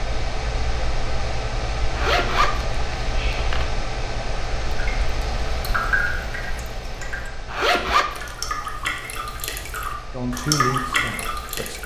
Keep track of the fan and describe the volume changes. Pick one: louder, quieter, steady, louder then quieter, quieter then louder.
quieter.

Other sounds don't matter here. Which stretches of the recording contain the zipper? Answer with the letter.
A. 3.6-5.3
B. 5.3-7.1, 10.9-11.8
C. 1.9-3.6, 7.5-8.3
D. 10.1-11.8
C.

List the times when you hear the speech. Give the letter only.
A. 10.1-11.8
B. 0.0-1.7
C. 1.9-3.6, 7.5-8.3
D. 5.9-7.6
A.